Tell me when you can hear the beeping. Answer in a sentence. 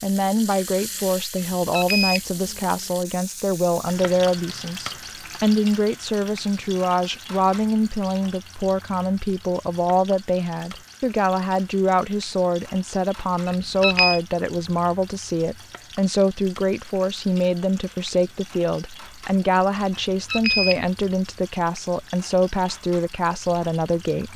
You can hear the beeping from 1.4 to 2.5 s, from 13.4 to 14.2 s and from 19.9 to 20.9 s.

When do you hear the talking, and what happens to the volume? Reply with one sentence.
You can hear the talking from 0.0 to 24.3 s, at a steady volume.